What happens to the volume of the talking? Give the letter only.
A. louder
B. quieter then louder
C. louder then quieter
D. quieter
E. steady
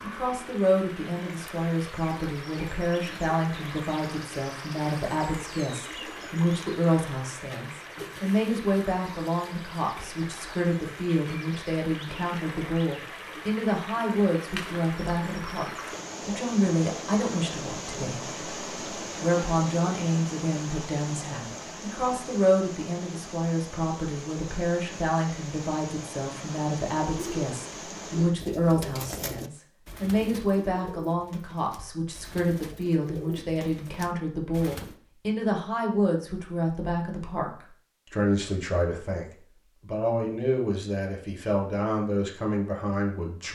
E.